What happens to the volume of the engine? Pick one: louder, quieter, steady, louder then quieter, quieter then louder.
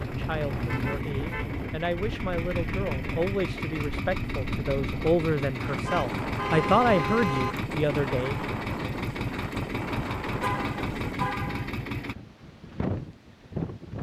steady.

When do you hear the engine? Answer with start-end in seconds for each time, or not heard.
0.0-12.2.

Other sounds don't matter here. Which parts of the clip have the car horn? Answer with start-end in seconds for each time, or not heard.
0.6-1.5, 5.8-7.5, 10.4-11.7.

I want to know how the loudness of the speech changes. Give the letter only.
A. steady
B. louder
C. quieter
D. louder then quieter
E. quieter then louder
B.